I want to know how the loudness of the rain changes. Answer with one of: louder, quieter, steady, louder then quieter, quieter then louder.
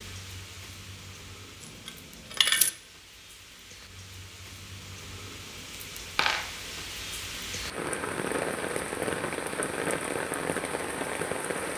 louder.